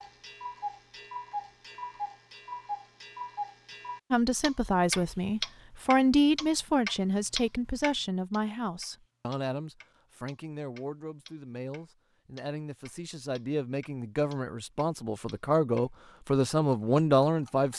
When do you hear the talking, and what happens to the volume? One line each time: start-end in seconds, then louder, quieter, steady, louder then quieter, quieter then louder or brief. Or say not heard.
4.1-17.7 quieter then louder.